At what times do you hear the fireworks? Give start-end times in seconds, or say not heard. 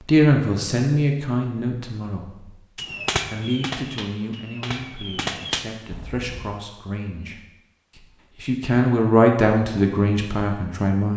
2.8-6.5.